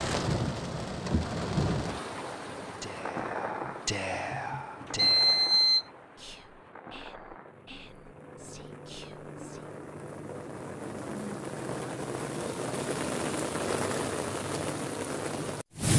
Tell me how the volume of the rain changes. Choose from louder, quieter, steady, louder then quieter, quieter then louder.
quieter then louder.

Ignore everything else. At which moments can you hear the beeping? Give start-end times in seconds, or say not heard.
3.6-5.8.